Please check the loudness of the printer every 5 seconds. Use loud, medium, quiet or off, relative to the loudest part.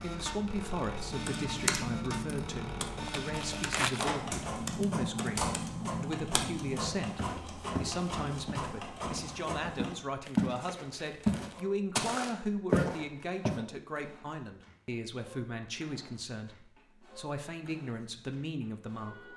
loud, loud, quiet, quiet.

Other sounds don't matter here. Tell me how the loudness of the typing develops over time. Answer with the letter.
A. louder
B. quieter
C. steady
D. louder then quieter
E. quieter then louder
E.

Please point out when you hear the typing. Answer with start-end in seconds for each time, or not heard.
1.1-6.8.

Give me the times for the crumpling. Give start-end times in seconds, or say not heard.
3.0-4.2, 10.2-11.7.